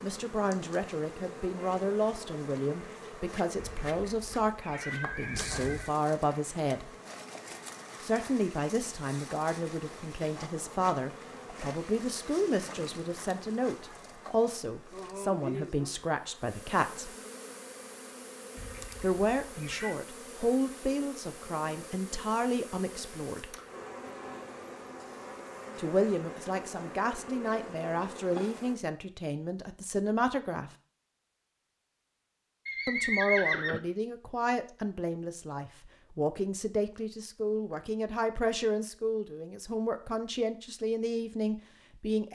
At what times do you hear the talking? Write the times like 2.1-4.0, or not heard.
0.0-6.9, 8.0-17.1, 19.0-23.6, 25.8-30.7, 32.9-42.3.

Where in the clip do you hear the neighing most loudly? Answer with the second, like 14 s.
33 s.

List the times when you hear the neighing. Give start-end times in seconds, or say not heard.
3.5-6.0, 18.6-19.9, 32.6-33.8.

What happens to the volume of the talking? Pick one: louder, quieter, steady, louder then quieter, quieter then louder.
steady.